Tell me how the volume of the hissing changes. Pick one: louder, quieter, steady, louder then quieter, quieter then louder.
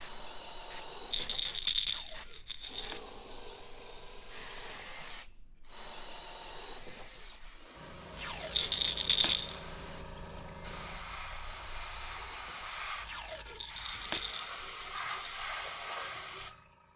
louder.